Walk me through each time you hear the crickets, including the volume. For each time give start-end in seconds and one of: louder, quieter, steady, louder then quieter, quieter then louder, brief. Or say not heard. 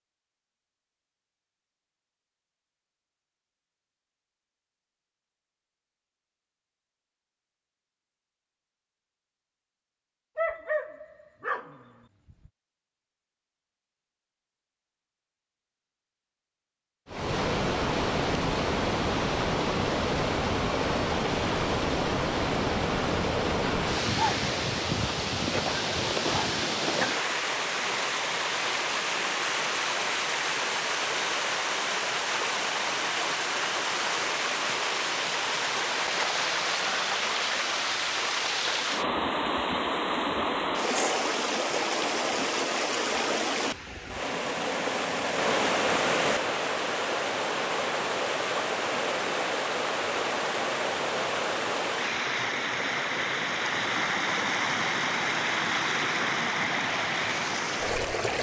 not heard.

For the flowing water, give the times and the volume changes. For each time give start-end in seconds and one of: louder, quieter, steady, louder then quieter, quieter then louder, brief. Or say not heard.
17.1-58.3 steady.